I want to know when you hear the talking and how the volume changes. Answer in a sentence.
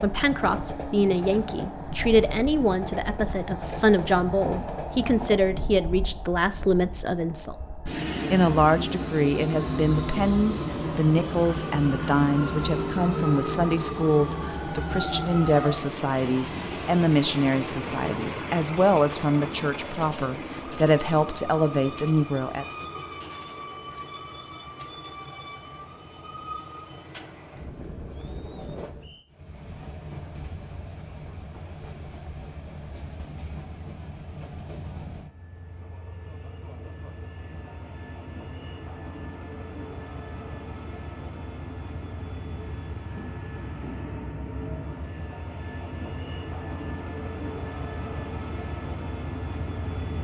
You can hear the talking from 0.0 to 7.5 s, at a steady volume; and from 8.3 to 22.9 s, at a steady volume.